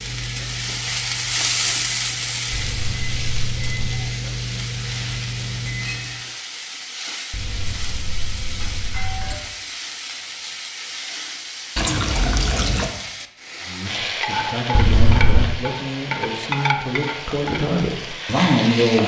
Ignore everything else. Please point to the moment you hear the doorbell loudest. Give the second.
15 s.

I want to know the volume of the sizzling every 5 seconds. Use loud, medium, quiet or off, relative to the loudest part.
loud, medium, loud, loud.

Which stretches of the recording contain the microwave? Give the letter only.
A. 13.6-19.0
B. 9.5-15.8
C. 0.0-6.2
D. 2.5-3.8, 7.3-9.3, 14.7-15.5
C.